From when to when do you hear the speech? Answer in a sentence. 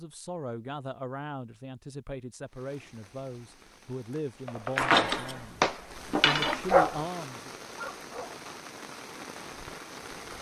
You can hear the speech from 0.0 to 7.5 s.